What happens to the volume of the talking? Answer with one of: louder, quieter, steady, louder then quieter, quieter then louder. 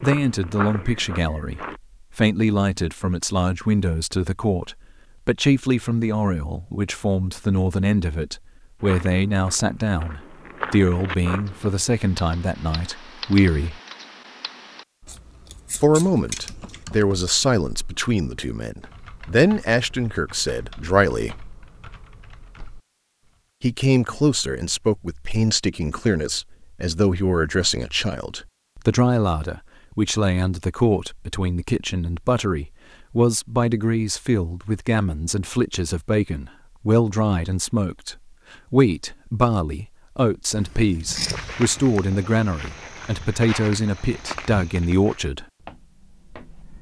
steady.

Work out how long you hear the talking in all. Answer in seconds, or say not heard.
41 s.